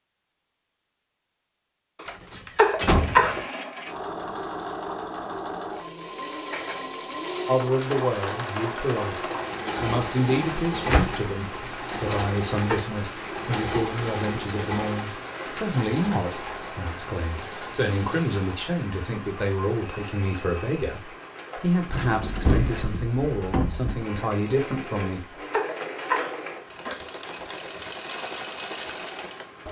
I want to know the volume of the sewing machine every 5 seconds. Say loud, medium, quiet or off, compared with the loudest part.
loud, loud, loud, medium, medium, loud.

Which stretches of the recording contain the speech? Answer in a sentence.
The speech can be heard from 7.5 to 25.2 s.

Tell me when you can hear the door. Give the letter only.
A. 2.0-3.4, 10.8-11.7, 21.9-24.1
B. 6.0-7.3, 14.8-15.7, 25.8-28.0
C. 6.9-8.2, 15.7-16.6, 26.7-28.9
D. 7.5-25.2
A.